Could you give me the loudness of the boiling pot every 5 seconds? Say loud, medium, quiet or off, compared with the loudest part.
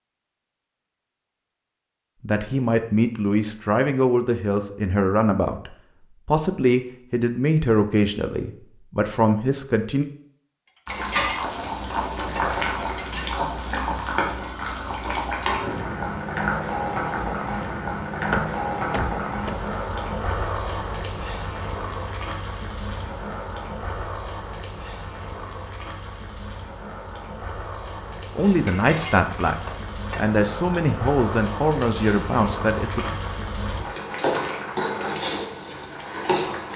off, off, loud, loud, medium, medium, loud, loud.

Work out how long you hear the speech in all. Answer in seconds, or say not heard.
13 s.